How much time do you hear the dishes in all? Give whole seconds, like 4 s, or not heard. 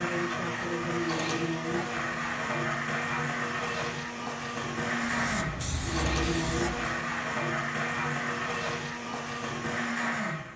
not heard.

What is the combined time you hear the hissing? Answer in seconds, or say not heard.
2 s.